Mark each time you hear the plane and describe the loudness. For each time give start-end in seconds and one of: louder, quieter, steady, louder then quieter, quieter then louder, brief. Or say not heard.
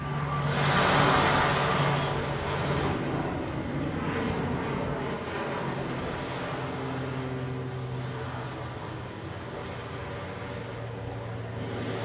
0.0-12.0 quieter.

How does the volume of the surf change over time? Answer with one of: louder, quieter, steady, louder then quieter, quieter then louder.
quieter.